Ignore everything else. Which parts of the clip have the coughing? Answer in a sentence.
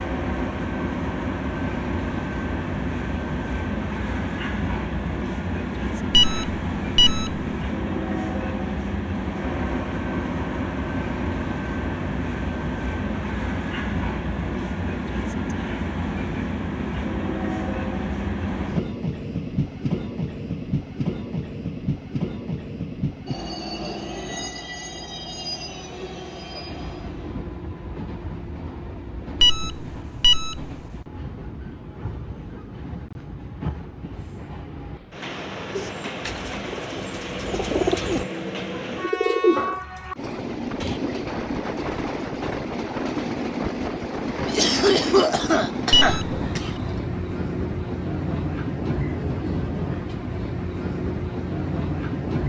The coughing can be heard from 44.5 to 47.0 s.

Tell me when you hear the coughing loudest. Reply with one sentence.
The loudest moment of the coughing is at 45 seconds.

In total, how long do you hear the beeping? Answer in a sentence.
You can hear the beeping for 3 seconds altogether.